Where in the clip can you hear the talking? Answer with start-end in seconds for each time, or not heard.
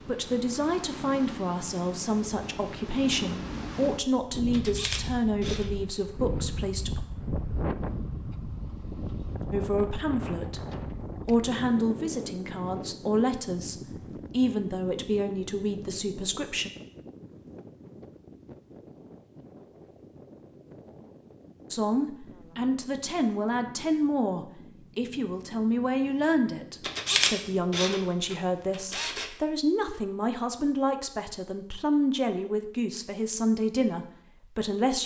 0.1-7.0, 9.5-16.7, 21.7-35.0.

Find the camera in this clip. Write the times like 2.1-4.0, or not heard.
4.5-5.7, 26.8-29.3.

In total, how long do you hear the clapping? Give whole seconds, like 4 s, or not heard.
not heard.